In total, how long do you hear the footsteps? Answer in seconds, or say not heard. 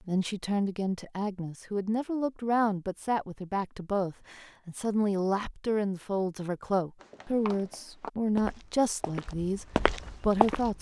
4 s.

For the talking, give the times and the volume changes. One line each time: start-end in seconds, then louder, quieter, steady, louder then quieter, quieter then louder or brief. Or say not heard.
0.1-10.7 steady.